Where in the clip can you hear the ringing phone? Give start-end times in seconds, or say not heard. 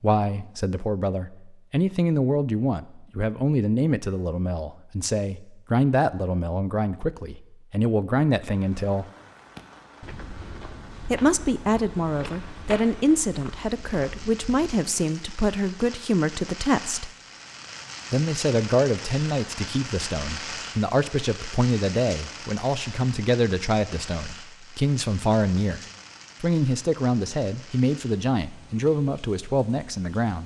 not heard.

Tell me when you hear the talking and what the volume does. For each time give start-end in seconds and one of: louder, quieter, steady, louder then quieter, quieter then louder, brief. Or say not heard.
0.0-9.1 steady
11.1-17.1 steady
18.1-25.8 steady
26.4-30.4 steady.